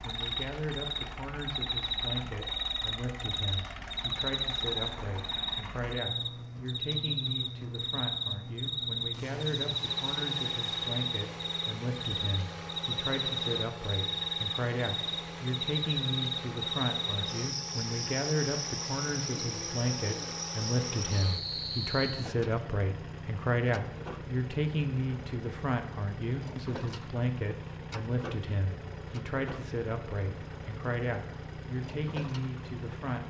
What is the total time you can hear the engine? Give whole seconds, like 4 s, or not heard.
33 s.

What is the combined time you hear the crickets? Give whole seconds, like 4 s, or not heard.
22 s.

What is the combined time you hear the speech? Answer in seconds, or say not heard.
33 s.